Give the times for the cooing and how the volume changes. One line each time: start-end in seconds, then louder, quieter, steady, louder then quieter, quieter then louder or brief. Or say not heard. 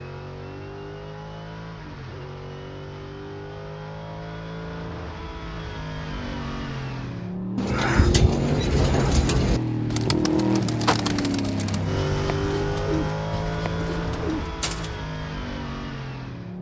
7.5-14.9 quieter.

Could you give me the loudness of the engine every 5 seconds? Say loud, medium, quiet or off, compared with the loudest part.
medium, loud, loud, medium.